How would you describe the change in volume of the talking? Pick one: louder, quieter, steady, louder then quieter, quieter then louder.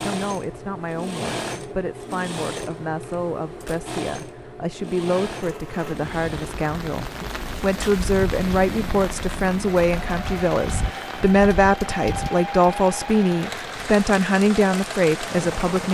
louder.